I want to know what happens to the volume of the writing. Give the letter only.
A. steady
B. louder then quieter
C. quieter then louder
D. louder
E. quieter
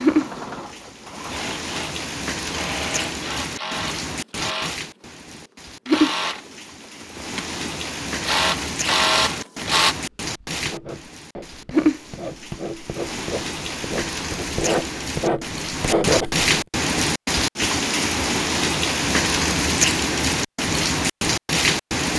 D.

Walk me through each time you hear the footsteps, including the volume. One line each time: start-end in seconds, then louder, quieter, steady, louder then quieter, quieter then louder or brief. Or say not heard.
not heard.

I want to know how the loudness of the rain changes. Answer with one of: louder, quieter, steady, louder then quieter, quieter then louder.
louder.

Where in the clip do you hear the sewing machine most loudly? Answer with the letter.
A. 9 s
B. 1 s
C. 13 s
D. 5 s
A.